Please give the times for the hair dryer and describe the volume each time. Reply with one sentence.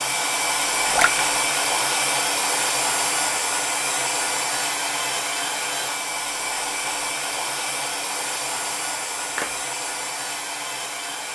The hair dryer can be heard from 0.0 to 11.3 s, getting quieter.